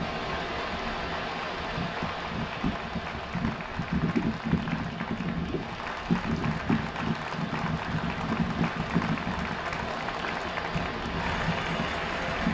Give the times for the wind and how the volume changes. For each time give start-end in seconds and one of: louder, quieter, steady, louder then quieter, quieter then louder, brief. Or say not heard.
0.0-12.5 steady.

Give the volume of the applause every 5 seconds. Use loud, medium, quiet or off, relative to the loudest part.
medium, loud, loud.